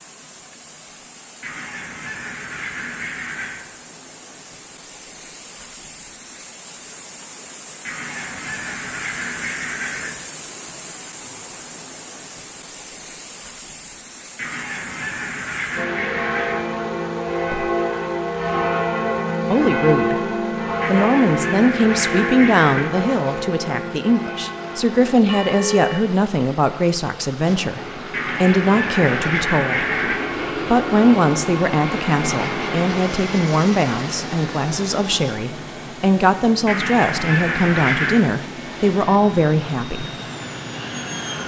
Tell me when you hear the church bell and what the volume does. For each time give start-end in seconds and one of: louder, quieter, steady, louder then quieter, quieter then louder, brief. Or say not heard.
15.8-26.0 quieter.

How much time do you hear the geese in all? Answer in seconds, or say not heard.
13 s.